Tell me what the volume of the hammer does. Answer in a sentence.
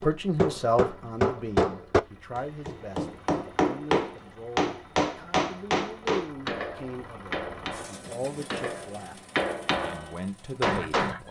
The volume of the hammer goes down, then up.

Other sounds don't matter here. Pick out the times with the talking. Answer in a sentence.
You can hear the talking from 0.0 to 9.2 s and from 9.8 to 11.2 s.